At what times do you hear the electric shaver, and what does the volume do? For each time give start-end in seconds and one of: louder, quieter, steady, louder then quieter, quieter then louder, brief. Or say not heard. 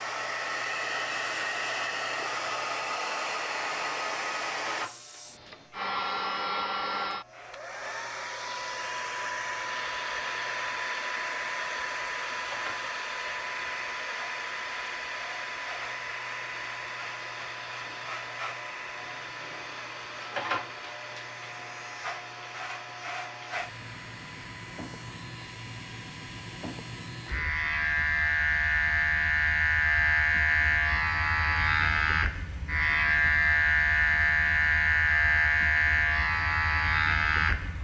0.0-37.8 louder.